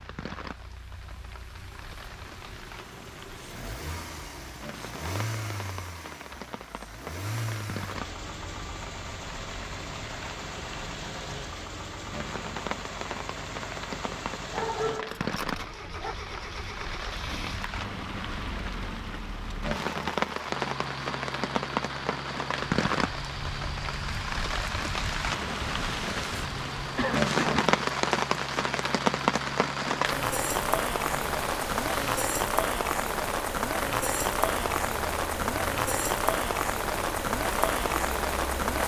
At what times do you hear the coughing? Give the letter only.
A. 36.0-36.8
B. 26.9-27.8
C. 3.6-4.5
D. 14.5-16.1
B.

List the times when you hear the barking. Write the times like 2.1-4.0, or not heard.
14.5-16.1.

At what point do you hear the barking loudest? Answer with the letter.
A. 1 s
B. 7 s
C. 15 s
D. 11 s
C.